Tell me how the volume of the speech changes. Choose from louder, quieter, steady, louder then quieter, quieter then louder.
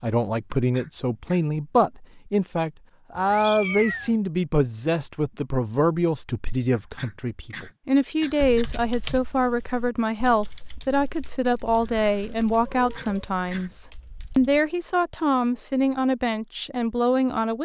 steady.